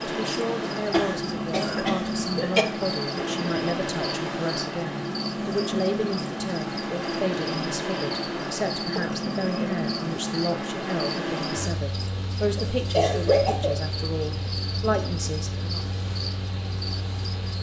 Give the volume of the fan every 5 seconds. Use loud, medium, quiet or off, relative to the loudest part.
loud, loud, loud, medium.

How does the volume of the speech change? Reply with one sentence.
The loudness of the speech stays about the same.